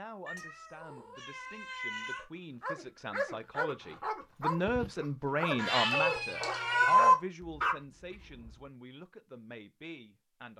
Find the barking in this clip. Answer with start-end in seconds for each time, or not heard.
2.6-8.6.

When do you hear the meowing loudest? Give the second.
7 s.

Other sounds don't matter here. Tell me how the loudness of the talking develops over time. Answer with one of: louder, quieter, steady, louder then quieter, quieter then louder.
louder then quieter.